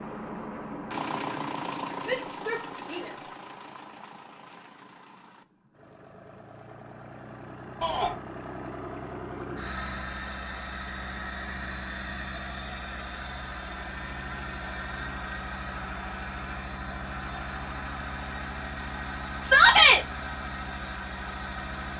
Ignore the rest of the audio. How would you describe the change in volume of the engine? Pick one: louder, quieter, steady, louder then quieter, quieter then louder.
quieter then louder.